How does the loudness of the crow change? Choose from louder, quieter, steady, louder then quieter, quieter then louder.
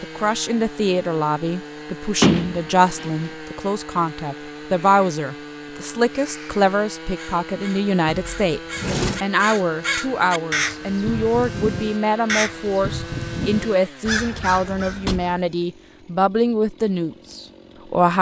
louder.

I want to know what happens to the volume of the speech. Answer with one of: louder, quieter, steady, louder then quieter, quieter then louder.
steady.